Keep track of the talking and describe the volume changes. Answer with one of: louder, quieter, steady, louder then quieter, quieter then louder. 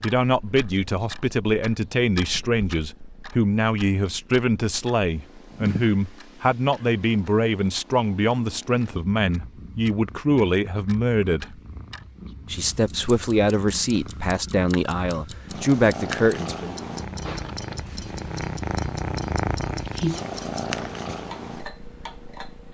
steady.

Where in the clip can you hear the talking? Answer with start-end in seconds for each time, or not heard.
0.0-11.6, 12.5-16.8.